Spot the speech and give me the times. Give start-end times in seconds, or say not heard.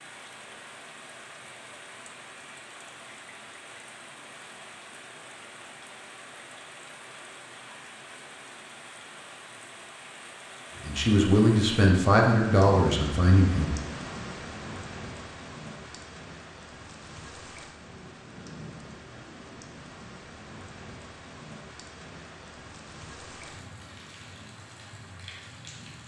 10.8-13.8.